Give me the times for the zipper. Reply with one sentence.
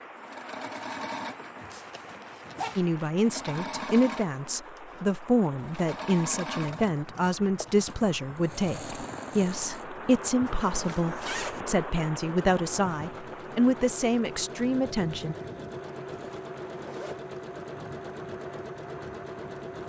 You can hear the zipper from 1.7 to 3.1 s, from 10.7 to 11.7 s and from 16.1 to 17.2 s.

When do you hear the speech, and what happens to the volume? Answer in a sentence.
The speech can be heard from 2.8 to 15.3 s, at a steady volume.